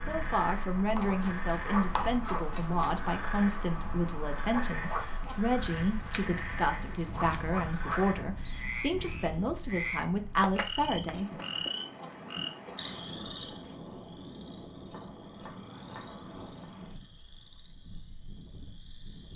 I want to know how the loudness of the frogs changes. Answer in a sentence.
The loudness of the frogs goes down.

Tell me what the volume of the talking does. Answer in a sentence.
The loudness of the talking stays about the same.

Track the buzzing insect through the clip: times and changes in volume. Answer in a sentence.
The buzzing insect can't be heard in this clip.